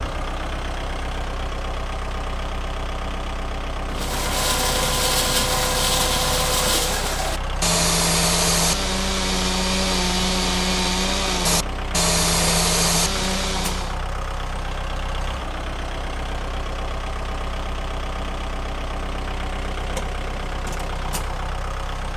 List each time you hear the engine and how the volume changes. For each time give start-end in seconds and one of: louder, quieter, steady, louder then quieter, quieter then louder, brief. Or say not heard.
0.0-22.1 steady.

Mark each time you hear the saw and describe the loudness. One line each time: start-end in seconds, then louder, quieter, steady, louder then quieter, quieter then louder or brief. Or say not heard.
3.9-13.9 steady.